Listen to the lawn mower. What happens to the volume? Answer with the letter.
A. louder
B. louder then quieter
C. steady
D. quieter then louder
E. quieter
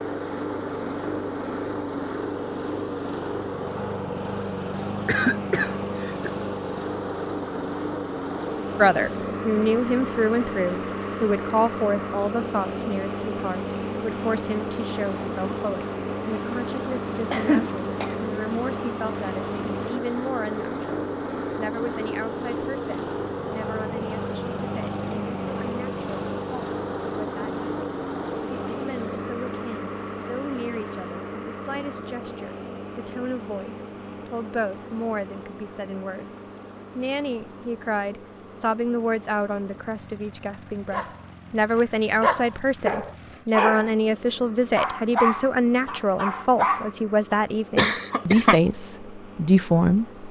E.